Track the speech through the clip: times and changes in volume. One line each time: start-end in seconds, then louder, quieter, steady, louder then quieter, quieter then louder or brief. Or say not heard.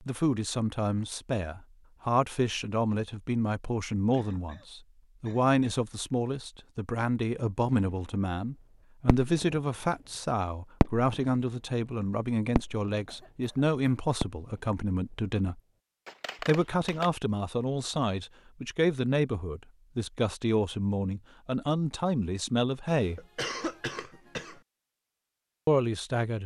0.0-15.6 steady
16.4-23.2 steady
25.6-26.4 brief.